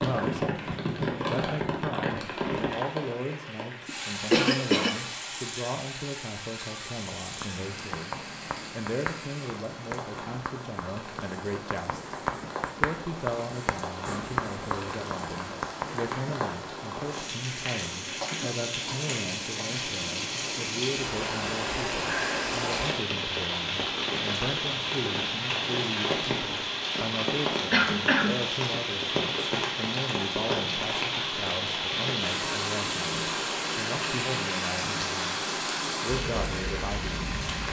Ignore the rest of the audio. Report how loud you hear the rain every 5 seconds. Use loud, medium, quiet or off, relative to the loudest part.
loud, medium, medium, medium, loud, loud, loud, loud.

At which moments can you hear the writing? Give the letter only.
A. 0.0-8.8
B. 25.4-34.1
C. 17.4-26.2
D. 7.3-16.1
D.